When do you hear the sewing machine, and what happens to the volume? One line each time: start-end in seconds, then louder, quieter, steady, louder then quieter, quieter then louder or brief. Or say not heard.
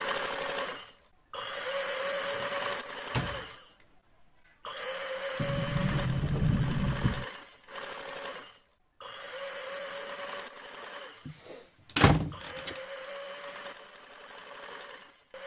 0.0-15.4 quieter.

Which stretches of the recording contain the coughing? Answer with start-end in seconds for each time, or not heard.
not heard.